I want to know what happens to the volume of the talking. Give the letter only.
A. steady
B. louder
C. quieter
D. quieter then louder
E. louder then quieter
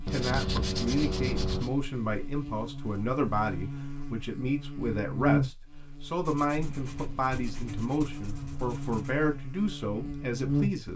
A.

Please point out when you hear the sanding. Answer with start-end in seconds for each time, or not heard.
0.1-1.7, 6.2-9.2.